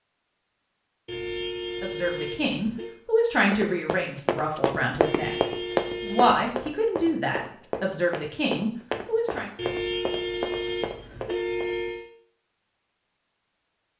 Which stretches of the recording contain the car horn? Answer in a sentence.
The car horn can be heard from 1.1 to 3.0 s, from 5.0 to 6.5 s and from 9.6 to 12.1 s.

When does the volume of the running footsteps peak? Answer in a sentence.
The volume of the running footsteps peaks at 6 seconds.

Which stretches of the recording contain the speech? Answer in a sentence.
The speech can be heard from 1.8 to 5.3 s and from 6.0 to 9.5 s.